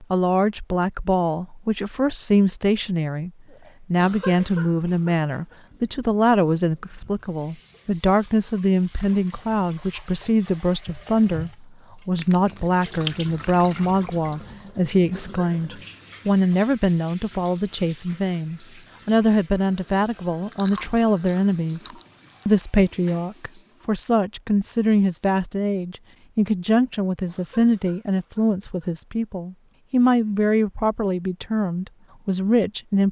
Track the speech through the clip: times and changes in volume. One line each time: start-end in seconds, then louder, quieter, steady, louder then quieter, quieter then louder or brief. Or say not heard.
0.0-33.0 steady.